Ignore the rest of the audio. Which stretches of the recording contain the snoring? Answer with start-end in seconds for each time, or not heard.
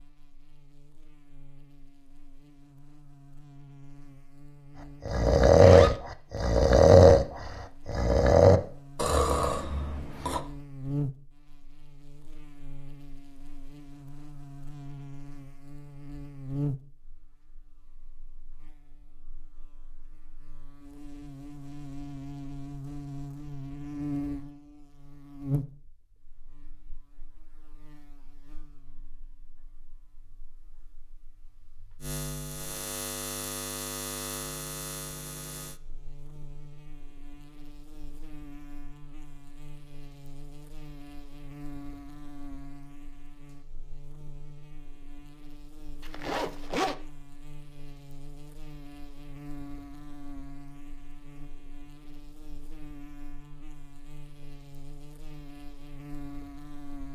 5.0-10.4.